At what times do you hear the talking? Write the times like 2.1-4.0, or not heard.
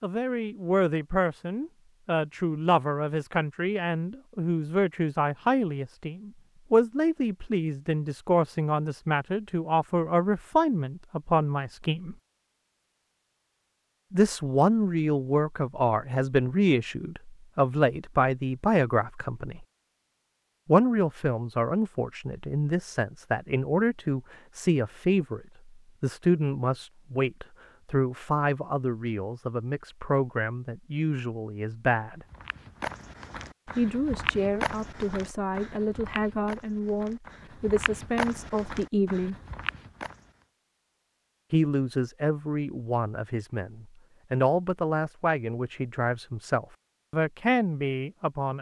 0.0-12.2, 14.1-19.6, 20.6-32.2, 33.6-39.4, 41.5-48.5.